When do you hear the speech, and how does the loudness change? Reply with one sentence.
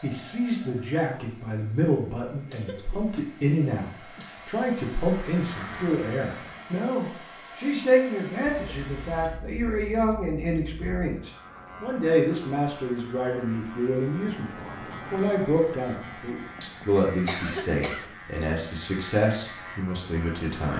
You can hear the speech from 0.0 to 20.7 s, at a steady volume.